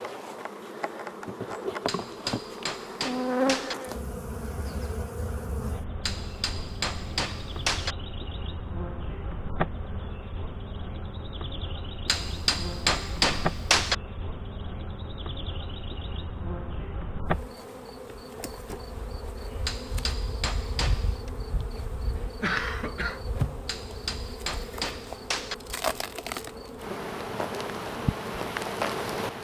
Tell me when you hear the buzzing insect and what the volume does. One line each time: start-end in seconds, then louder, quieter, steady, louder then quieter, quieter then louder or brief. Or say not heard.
0.0-29.3 quieter then louder.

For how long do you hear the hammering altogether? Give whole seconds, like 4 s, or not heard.
9 s.